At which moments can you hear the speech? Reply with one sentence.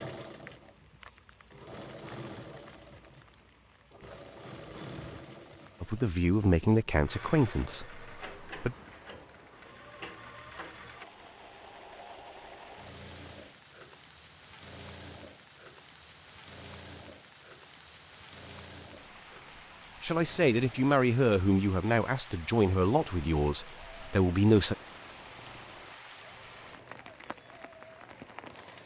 You can hear the speech from 5.8 to 8.8 s and from 20.0 to 24.8 s.